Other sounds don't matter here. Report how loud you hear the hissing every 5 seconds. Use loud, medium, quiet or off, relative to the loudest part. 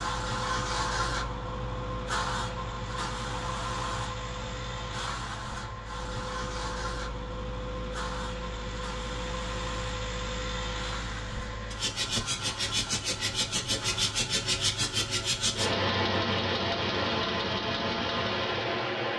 loud, medium, medium, off.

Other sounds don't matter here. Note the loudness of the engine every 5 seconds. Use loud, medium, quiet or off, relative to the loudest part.
medium, medium, loud, loud.